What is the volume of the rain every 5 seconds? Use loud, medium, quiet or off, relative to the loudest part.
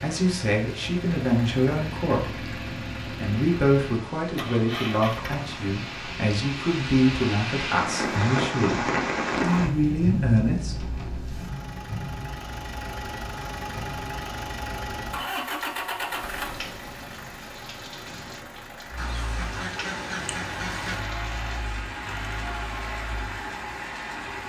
quiet, loud, medium, quiet, quiet.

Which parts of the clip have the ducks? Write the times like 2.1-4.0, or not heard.
18.9-21.1.